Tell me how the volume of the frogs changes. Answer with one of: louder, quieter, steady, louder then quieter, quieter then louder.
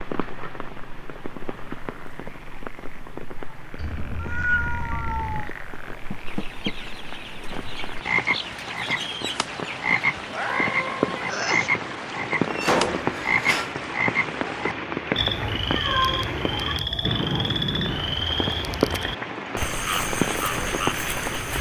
louder.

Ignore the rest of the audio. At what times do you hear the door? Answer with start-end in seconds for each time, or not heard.
6.1-6.8, 12.4-13.8.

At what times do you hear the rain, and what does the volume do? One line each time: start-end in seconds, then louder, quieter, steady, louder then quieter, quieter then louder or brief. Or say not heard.
0.0-21.5 louder.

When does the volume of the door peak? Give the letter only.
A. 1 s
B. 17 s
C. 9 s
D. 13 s
D.